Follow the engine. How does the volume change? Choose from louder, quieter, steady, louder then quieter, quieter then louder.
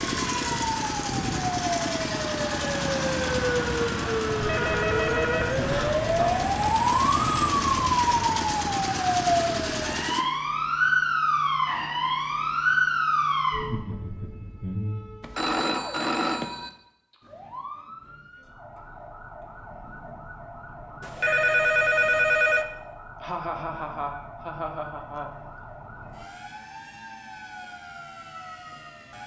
quieter then louder.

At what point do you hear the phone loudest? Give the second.
22 s.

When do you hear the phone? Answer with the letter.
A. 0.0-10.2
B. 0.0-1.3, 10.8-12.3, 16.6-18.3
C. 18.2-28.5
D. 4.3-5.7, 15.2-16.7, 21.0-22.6
D.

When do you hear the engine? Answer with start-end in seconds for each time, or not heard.
0.0-10.2.